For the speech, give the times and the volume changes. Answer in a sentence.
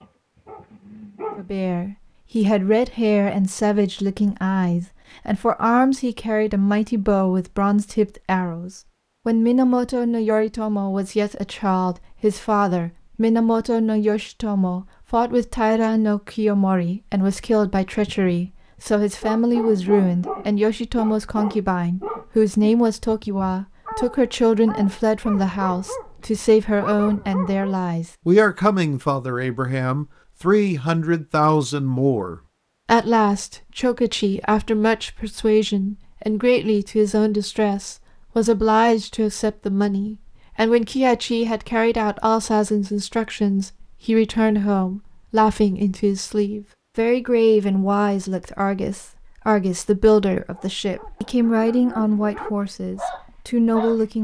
The speech can be heard from 1.4 to 54.2 s, at a steady volume.